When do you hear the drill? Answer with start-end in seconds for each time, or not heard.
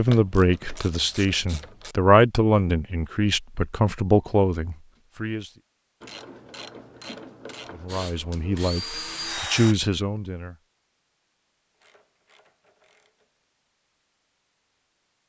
7.8-9.8.